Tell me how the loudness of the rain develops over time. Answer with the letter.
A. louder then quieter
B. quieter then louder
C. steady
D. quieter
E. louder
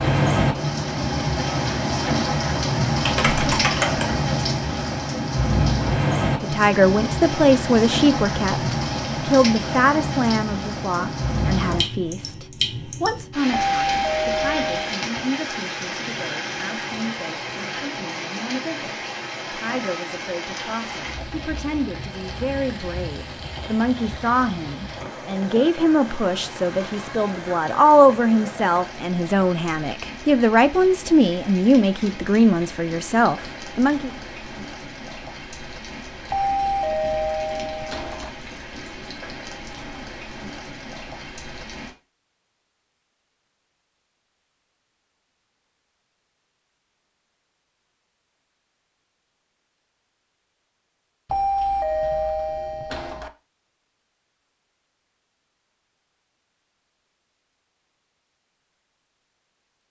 D.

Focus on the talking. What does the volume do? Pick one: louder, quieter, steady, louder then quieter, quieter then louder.
quieter then louder.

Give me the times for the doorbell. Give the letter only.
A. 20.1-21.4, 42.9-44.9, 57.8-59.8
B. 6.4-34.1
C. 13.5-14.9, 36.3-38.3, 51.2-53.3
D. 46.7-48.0
C.